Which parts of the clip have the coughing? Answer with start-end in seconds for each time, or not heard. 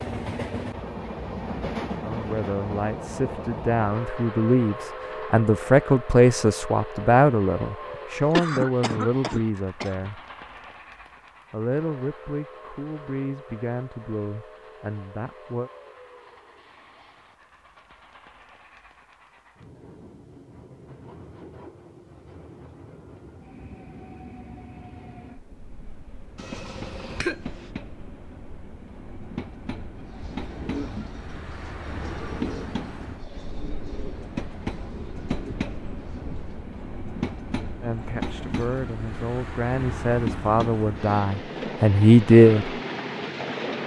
7.9-10.1, 26.4-27.7.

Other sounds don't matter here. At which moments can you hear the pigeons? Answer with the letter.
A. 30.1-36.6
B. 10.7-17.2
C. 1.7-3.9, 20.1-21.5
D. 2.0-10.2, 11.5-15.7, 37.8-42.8
A.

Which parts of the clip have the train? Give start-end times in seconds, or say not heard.
0.0-43.8.